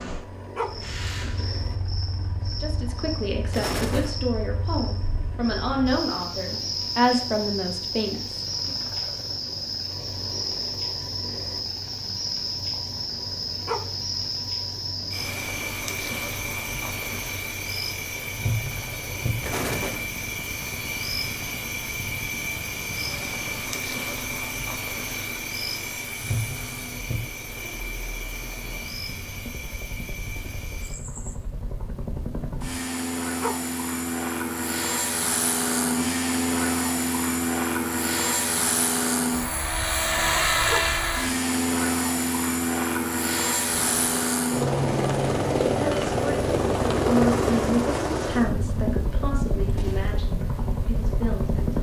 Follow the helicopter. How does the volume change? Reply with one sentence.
The loudness of the helicopter goes up.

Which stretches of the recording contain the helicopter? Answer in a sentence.
The helicopter can be heard from 0.0 to 51.7 s.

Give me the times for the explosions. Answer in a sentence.
The explosions can be heard from 3.5 to 4.2 s, from 19.4 to 20.1 s and from 43.7 to 44.1 s.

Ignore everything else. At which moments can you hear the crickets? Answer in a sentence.
You can hear the crickets from 0.0 to 31.4 s.